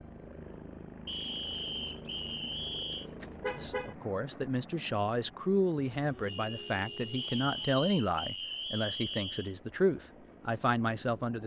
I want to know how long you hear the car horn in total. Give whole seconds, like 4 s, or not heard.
3 s.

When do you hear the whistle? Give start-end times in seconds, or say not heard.
1.1-3.1, 7.2-9.6.